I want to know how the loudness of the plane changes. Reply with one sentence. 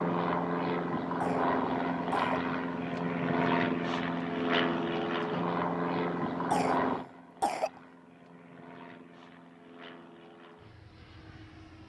The loudness of the plane goes down.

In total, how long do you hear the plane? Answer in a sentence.
You can hear the plane for 12 seconds altogether.